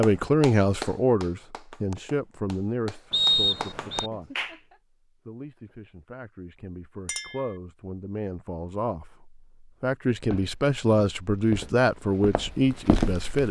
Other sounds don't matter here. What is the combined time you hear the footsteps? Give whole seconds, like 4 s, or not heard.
3 s.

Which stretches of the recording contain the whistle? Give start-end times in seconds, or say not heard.
3.1-4.1.